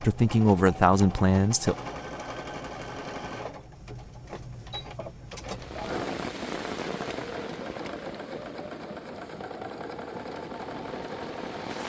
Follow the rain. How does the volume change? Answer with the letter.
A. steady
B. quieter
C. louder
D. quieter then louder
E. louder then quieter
D.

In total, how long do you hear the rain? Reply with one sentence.
The rain can be heard for 6 seconds in total.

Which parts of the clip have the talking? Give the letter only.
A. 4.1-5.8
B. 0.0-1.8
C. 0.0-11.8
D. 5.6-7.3
B.